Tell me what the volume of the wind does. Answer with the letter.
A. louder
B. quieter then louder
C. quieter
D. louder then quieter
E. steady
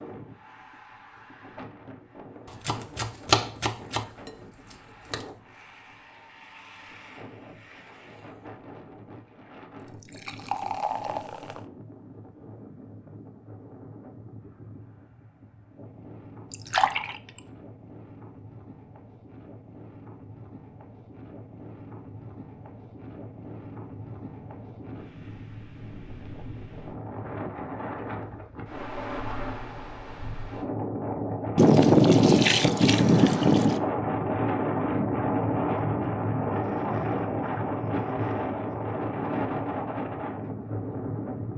A.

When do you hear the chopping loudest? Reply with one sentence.
The loudest moment of the chopping is at 3 seconds.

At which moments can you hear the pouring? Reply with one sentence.
The pouring can be heard from 9.8 to 11.6 s, from 16.5 to 17.1 s and from 31.6 to 33.8 s.